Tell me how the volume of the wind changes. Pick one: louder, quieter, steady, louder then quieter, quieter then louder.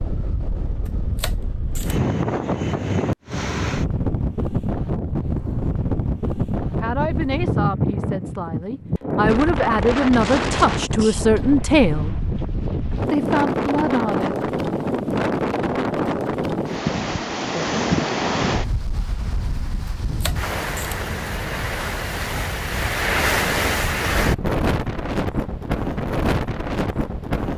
steady.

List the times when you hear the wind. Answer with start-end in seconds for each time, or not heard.
0.0-27.5.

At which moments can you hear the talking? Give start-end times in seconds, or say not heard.
6.8-12.1, 13.1-14.3.